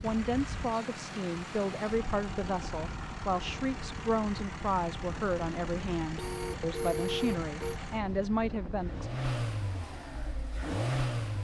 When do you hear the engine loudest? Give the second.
11 s.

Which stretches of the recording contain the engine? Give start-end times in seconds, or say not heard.
0.0-11.3.